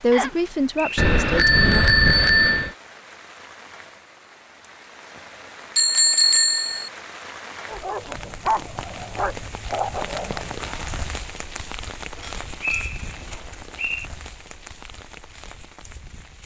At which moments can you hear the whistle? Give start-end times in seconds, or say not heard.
0.1-1.1, 12.6-14.1.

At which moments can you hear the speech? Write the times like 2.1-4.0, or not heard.
0.0-1.9.